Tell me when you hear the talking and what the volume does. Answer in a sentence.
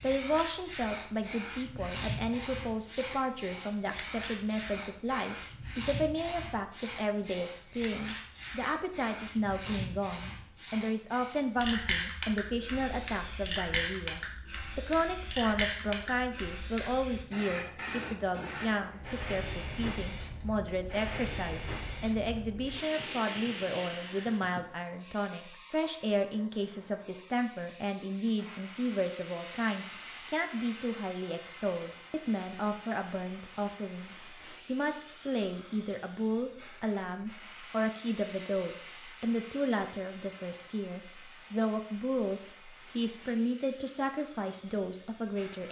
You can hear the talking from 0.0 to 45.6 s, at a steady volume.